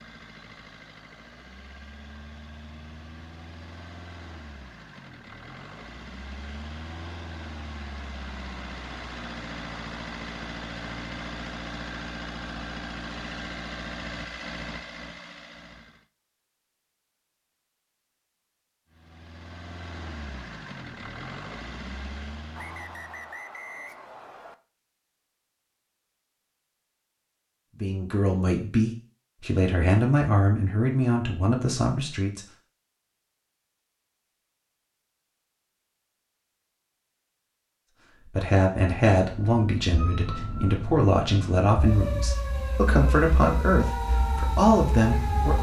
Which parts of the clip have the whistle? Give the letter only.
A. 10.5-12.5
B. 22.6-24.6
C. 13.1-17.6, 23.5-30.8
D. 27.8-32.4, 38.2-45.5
B.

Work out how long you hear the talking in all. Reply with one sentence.
You can hear the talking for 12 seconds altogether.